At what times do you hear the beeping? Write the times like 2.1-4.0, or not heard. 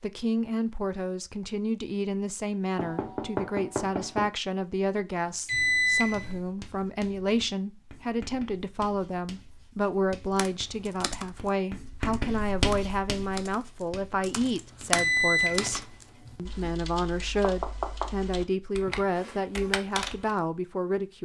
5.2-6.4, 14.9-16.7.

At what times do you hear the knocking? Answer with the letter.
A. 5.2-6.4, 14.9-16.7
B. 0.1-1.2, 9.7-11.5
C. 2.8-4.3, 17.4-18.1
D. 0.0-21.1
C.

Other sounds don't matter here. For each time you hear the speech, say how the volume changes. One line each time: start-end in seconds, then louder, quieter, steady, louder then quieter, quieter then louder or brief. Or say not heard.
0.0-21.1 steady.